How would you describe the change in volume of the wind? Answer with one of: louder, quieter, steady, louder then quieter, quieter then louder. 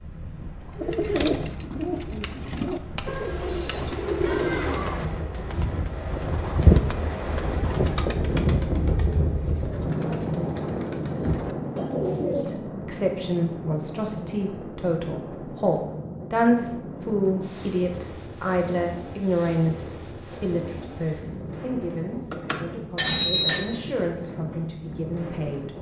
louder then quieter.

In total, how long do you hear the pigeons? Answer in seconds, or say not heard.
12 s.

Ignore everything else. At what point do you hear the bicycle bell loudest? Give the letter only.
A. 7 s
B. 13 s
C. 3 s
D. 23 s
D.